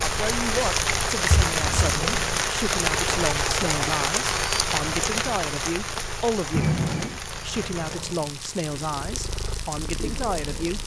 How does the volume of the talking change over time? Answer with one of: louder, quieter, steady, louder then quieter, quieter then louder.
steady.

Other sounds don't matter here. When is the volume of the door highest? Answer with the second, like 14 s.
7 s.